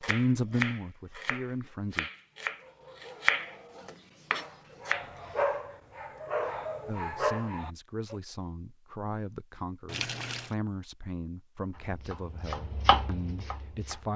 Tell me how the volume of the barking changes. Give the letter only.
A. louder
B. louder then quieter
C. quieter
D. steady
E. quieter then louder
A.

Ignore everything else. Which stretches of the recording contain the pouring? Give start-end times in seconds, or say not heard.
9.8-10.6.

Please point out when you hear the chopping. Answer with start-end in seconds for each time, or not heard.
0.0-3.5, 4.3-5.1, 11.7-14.1.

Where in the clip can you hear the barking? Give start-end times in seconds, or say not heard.
2.5-8.2.